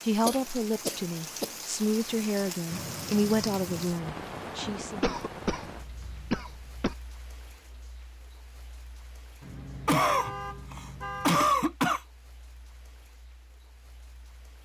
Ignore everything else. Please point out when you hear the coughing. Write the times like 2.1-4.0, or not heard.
0.2-1.5, 5.0-7.0, 9.8-12.0.